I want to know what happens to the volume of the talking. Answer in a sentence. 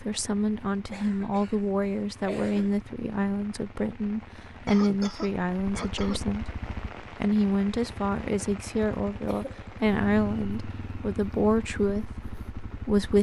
The volume of the talking stays about the same.